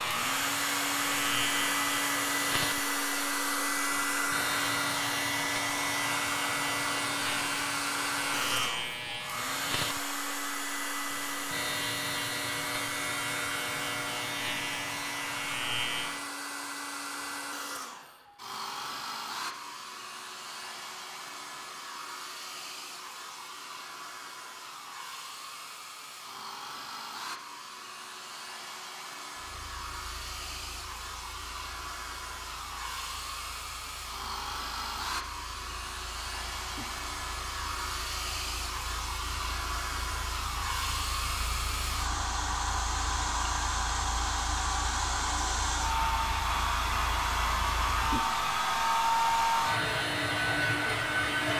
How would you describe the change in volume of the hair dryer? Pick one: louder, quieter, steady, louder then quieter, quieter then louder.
quieter then louder.